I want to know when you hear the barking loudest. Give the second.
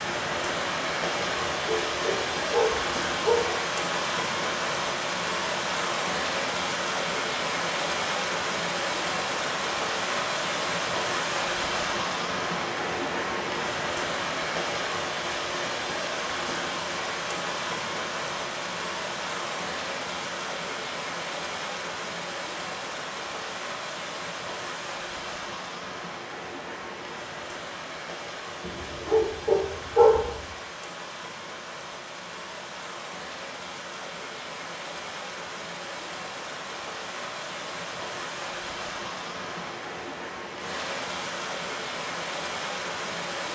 30 s.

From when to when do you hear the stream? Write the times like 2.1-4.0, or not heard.
0.0-43.4.